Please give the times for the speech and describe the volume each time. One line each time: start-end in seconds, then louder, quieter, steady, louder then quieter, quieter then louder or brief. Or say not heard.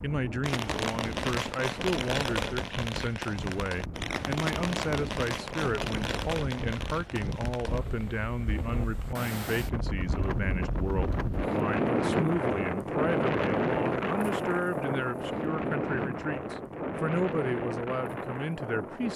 0.0-19.1 steady.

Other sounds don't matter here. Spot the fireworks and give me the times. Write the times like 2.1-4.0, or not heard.
0.4-7.8.